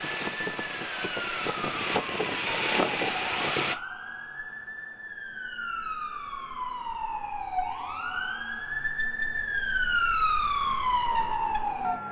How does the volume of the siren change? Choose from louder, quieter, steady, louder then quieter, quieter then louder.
louder.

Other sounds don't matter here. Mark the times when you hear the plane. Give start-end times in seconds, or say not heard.
0.0-3.8.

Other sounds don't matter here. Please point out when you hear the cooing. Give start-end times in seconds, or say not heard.
not heard.